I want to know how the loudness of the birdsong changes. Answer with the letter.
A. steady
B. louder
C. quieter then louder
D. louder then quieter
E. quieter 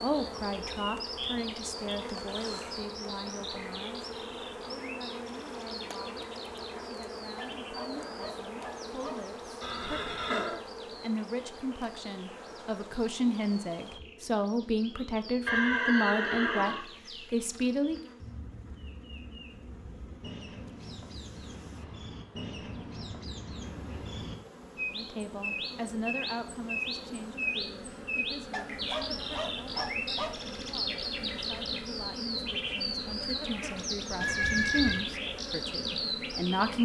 C.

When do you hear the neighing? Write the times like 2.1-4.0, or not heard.
9.6-10.6, 15.4-16.9, 34.2-35.0.